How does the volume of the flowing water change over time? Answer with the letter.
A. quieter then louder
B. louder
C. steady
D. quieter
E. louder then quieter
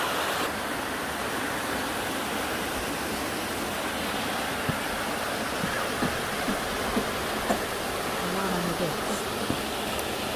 C.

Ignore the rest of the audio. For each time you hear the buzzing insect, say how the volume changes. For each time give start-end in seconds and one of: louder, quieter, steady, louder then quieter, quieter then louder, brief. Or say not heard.
not heard.